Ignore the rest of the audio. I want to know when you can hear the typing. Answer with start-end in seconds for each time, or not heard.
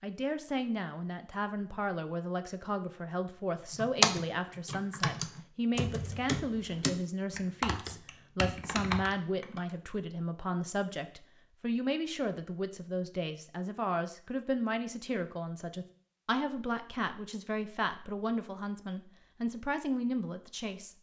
3.8-9.6.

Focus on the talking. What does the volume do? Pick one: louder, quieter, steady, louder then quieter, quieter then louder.
steady.